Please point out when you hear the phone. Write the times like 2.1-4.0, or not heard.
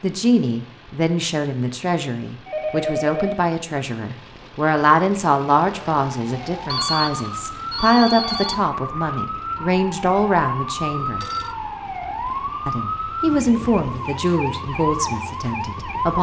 2.5-3.4, 6.7-8.6, 11.0-11.6.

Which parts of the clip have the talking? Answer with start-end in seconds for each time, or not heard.
0.0-11.2, 12.7-16.1.